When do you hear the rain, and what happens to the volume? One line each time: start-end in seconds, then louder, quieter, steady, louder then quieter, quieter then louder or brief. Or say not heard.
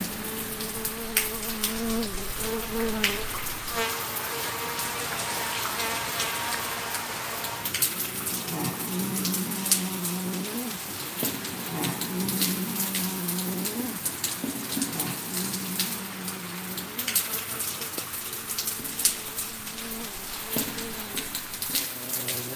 0.0-22.5 steady.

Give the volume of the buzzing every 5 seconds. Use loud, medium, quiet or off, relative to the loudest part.
loud, loud, loud, medium, medium.